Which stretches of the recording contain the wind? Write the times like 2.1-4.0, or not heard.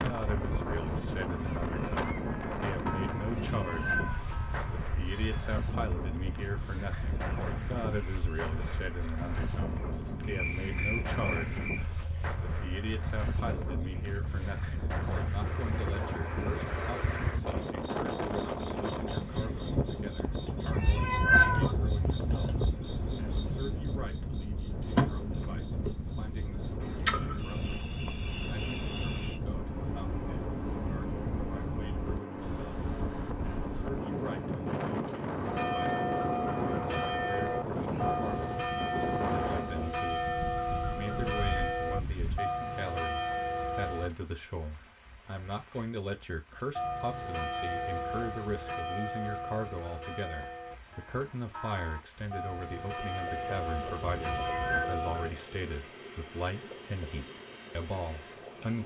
0.0-42.4.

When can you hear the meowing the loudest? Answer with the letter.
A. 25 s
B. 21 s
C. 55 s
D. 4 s
B.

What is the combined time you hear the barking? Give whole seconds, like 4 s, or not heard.
not heard.